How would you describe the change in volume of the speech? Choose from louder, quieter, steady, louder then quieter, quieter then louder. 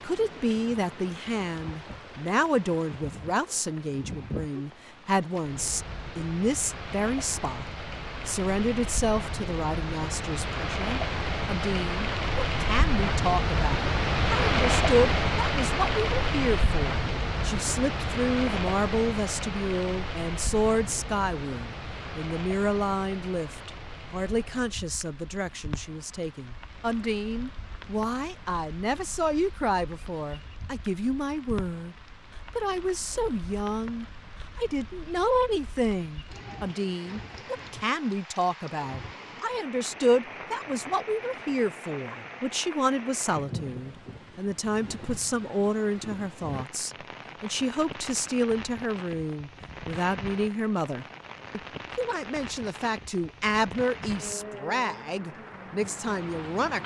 steady.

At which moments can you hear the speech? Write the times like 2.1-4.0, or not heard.
0.0-7.7, 8.2-56.8.